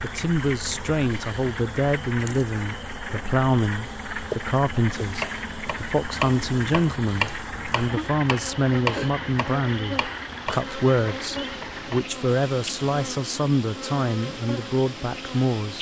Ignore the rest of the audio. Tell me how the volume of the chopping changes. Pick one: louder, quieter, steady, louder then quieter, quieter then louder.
quieter.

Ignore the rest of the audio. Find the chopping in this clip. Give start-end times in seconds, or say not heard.
4.8-12.0.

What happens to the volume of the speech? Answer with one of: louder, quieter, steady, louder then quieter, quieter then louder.
steady.